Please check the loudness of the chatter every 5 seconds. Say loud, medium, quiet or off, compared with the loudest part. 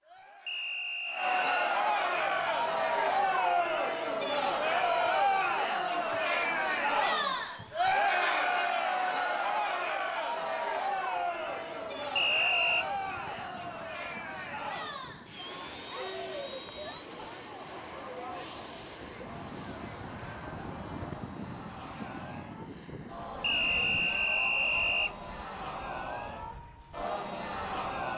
loud, loud, medium, quiet, quiet, medium.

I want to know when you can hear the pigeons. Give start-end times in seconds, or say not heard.
not heard.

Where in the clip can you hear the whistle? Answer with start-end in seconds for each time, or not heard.
0.5-1.8, 12.2-12.8, 23.4-25.1.